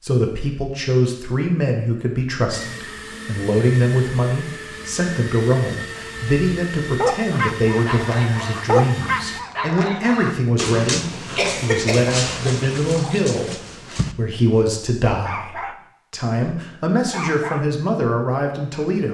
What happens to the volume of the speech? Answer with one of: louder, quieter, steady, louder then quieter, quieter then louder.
steady.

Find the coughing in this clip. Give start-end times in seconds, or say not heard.
11.3-12.1.